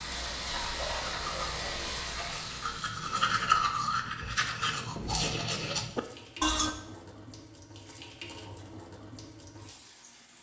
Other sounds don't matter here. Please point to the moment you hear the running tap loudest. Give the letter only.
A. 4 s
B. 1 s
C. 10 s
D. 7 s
B.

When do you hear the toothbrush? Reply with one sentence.
You can hear the toothbrush from 0.9 to 6.8 s.